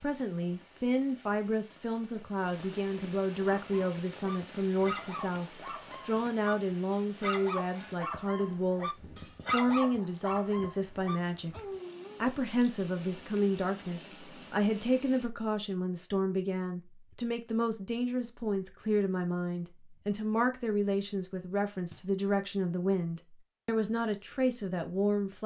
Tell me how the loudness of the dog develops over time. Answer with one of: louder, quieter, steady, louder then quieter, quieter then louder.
louder then quieter.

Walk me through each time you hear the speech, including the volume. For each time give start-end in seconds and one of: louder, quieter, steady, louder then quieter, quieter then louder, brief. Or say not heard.
0.0-11.6 steady
12.2-25.4 steady.